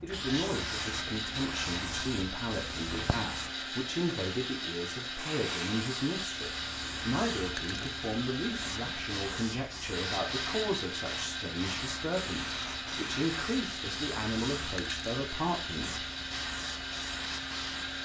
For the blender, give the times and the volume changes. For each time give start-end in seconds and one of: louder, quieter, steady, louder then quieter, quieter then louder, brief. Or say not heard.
0.1-17.9 steady.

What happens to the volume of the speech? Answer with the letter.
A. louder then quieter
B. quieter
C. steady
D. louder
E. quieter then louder
C.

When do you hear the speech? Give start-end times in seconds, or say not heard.
0.0-16.1.